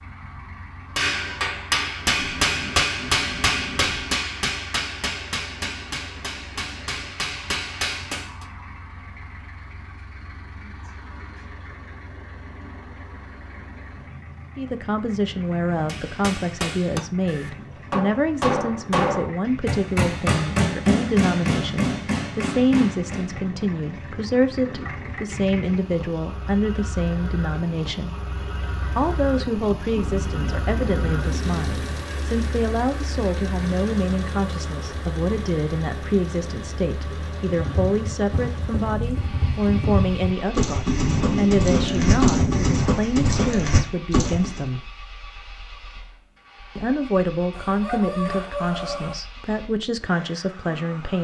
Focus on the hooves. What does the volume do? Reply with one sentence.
The loudness of the hooves goes up.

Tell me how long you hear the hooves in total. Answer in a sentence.
You can hear the hooves for 7 seconds altogether.